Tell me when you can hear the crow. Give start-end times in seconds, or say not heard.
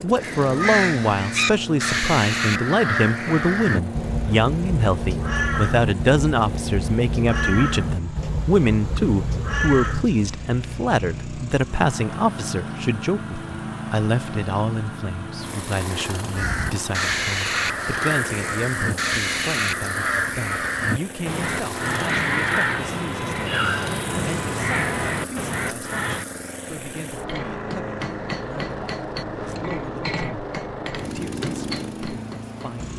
0.1-10.1, 16.4-26.2.